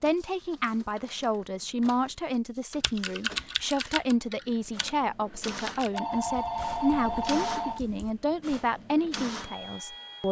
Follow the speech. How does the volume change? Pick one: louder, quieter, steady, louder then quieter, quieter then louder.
steady.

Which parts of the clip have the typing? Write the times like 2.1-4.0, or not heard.
2.8-8.6.